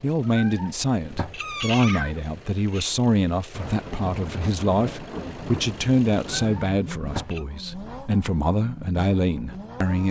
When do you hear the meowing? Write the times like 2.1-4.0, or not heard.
0.2-3.0, 6.3-7.5.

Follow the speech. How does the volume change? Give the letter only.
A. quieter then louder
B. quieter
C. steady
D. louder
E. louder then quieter
C.